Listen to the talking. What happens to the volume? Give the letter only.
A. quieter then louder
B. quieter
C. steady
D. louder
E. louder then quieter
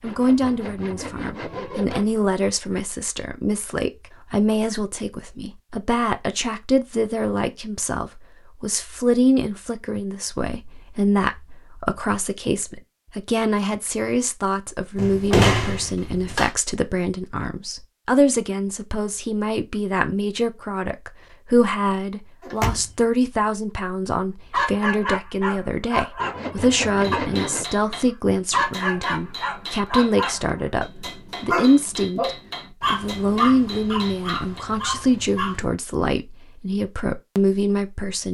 C.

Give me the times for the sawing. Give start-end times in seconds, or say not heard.
0.0-2.1, 26.2-27.6.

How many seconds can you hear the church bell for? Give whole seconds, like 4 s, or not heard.
not heard.